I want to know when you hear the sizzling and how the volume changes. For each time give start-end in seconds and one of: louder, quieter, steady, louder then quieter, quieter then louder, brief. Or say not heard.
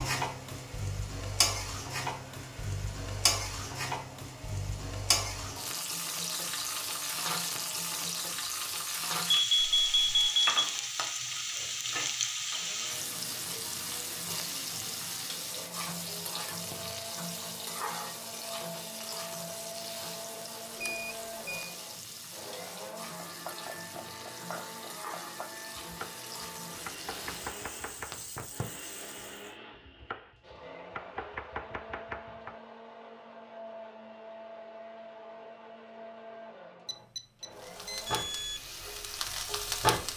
0.0-29.6 quieter
37.5-40.1 brief.